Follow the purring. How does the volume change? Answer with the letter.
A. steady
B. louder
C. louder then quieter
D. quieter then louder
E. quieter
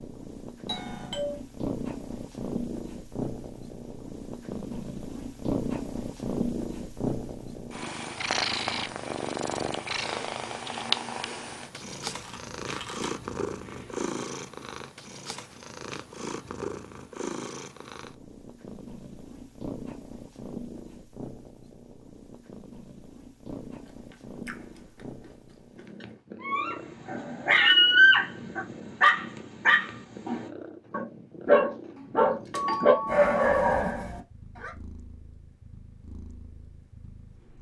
E.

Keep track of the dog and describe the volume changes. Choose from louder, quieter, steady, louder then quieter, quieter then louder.
quieter then louder.